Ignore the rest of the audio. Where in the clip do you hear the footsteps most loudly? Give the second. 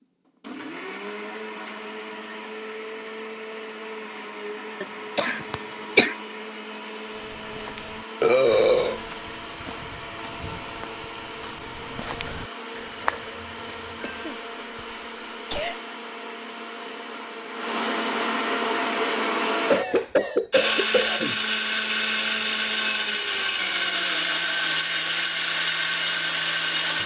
13 s.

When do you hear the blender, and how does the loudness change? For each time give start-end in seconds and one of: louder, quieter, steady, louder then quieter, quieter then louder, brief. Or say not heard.
0.0-27.0 louder.